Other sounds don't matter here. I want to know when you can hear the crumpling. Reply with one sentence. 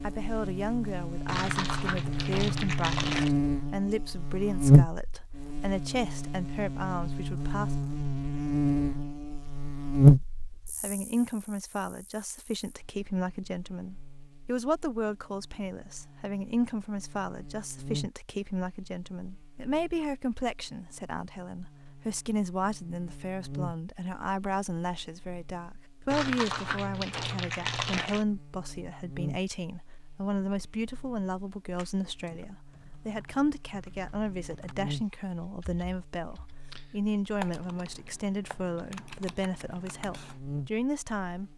The crumpling can be heard from 1.2 to 3.3 s and from 26.1 to 28.2 s.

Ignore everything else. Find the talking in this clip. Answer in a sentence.
The talking can be heard from 0.0 to 7.8 s and from 10.8 to 41.5 s.